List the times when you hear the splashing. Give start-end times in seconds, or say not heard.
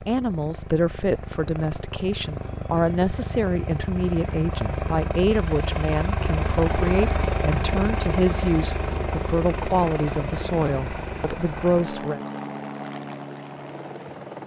not heard.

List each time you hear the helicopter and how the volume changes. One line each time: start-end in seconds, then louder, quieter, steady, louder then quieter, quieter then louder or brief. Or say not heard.
0.0-14.4 louder then quieter.